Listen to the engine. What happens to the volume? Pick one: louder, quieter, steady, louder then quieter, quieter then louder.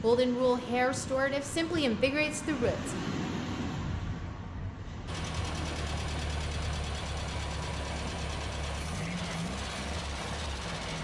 steady.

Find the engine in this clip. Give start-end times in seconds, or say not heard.
5.0-10.9.